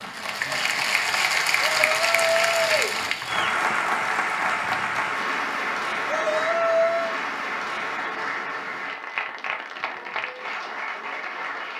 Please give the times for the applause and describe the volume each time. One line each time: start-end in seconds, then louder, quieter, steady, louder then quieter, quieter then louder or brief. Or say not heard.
0.0-11.7 quieter.